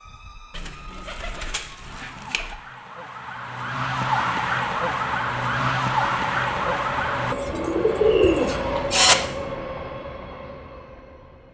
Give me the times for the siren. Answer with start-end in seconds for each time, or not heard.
0.0-7.3.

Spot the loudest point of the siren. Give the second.
6 s.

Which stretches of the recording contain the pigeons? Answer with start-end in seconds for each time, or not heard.
0.5-2.5, 7.3-9.2.